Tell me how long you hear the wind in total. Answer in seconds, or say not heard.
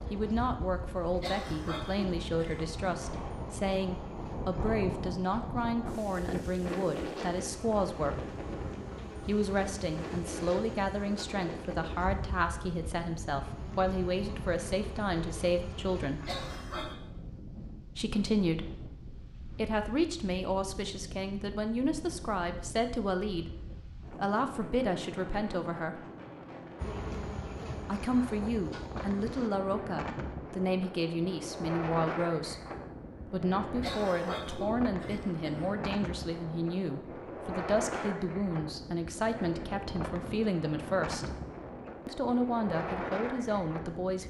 44 s.